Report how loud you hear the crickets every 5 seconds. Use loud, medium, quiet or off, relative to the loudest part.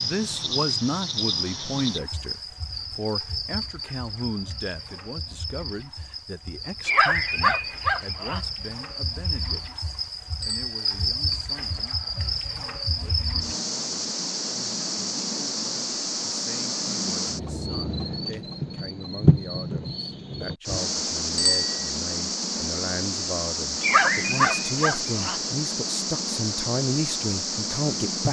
loud, medium, loud, loud, loud, loud.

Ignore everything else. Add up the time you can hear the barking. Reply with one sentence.
You can hear the barking for 3 seconds altogether.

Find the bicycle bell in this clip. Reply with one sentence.
You can hear the bicycle bell from 10.4 to 10.9 s and from 21.4 to 21.9 s.